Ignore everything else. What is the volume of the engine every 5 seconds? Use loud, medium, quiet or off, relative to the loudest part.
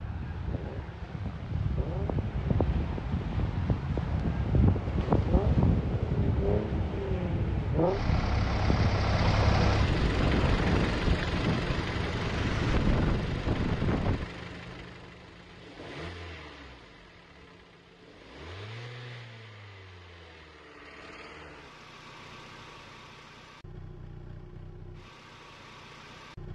quiet, loud, loud, quiet, quiet, quiet.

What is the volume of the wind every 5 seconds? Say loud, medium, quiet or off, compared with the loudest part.
loud, loud, loud, off, off, off.